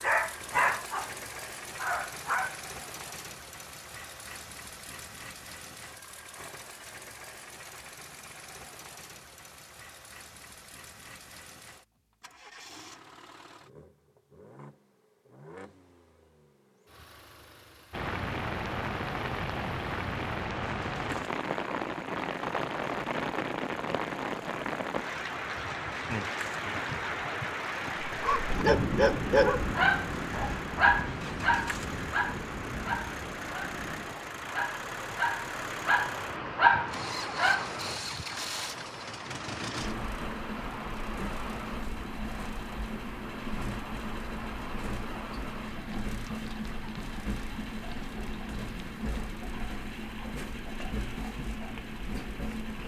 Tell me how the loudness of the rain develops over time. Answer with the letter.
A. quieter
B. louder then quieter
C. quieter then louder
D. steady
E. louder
A.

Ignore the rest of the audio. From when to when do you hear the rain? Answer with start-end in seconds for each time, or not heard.
17.9-52.8.